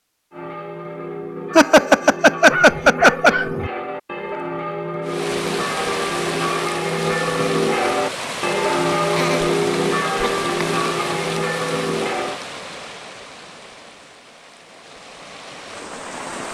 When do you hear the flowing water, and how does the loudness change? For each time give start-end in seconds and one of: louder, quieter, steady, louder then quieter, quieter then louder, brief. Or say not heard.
5.0-16.4 quieter.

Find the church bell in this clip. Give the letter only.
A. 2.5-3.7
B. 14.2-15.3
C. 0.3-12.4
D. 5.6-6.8
C.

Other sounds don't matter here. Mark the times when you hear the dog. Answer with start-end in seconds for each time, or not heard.
2.5-3.7.